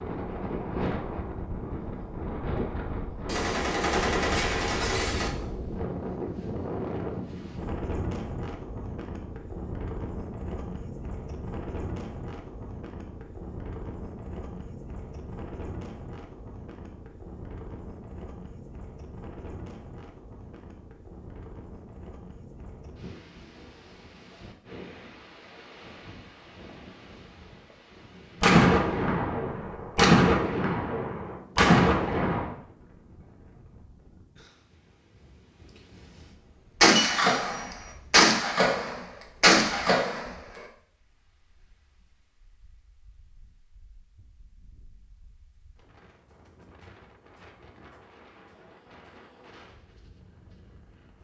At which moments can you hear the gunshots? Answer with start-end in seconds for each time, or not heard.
3.2-5.3, 28.4-32.5, 36.8-40.6.